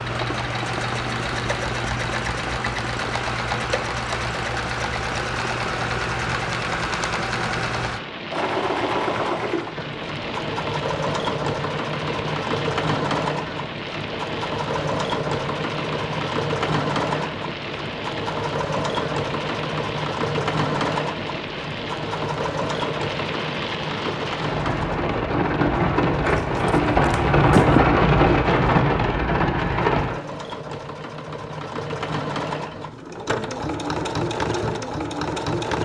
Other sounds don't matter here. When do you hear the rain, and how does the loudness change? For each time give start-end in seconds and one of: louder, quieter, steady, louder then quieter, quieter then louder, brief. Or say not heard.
0.0-30.2 louder.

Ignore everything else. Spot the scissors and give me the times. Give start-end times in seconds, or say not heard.
26.4-27.9.